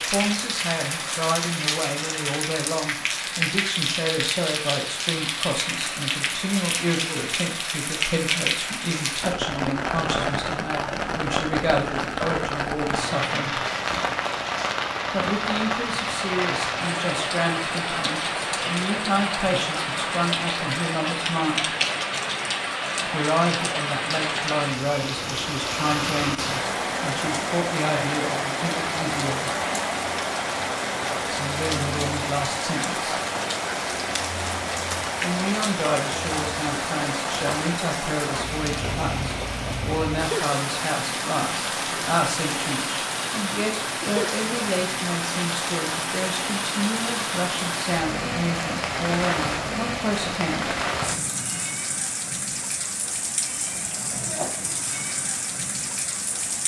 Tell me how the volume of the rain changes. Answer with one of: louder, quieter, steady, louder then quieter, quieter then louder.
steady.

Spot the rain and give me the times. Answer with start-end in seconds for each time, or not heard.
0.0-56.6.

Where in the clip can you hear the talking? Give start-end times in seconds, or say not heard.
0.1-13.7, 15.1-21.7, 23.1-29.5, 31.1-33.1, 35.2-50.8.